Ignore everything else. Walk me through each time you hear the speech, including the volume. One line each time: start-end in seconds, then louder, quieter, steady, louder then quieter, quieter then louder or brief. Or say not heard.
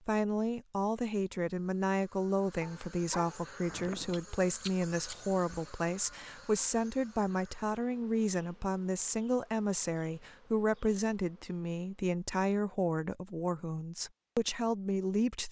0.1-15.4 steady.